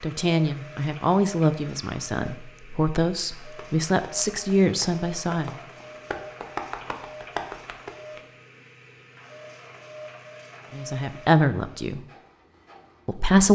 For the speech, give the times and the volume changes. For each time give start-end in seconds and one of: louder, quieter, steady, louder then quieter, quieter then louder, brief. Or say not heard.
0.0-5.5 steady
10.7-12.0 brief
13.1-13.5 brief.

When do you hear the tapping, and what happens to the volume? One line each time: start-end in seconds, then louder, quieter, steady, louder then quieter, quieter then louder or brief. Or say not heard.
3.4-8.2 louder.